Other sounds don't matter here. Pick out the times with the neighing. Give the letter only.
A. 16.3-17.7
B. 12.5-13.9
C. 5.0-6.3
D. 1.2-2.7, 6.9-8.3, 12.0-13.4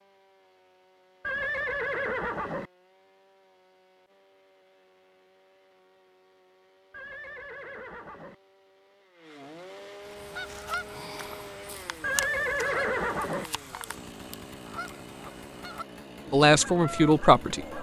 D.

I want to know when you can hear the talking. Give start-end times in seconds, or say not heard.
16.3-17.7.